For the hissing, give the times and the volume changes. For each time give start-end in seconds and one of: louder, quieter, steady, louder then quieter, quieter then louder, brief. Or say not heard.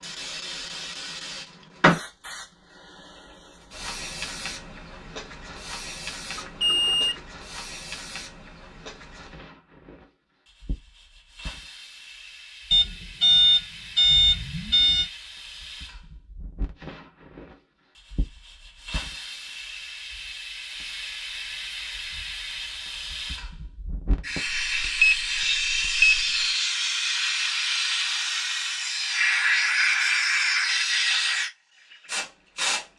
0.0-32.9 quieter then louder.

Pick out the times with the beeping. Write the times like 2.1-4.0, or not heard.
6.3-7.2, 12.7-15.1, 24.4-26.4.